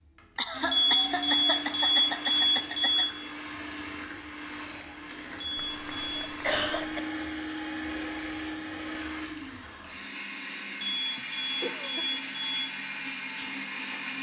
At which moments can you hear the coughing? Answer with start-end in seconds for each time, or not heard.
0.3-3.0, 5.5-7.0, 11.2-12.2.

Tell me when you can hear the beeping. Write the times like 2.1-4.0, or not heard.
0.7-3.1, 5.4-6.3, 10.8-12.7.